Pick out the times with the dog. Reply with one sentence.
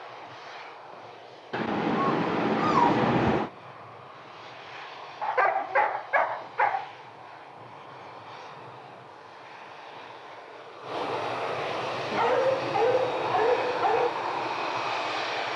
The dog can be heard from 1.5 to 3.5 s, from 5.2 to 6.9 s and from 12.1 to 14.1 s.